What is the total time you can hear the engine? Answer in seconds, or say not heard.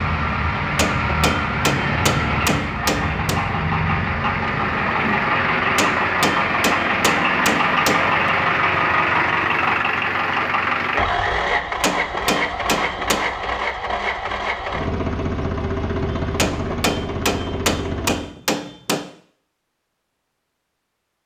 18 s.